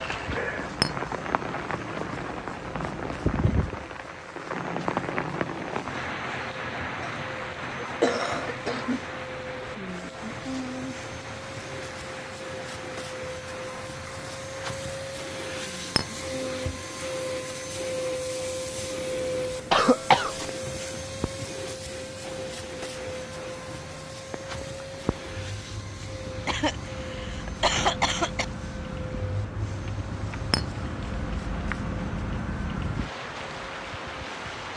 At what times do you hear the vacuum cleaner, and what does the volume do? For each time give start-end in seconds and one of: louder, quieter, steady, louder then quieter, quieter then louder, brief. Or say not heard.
0.0-34.6 louder then quieter.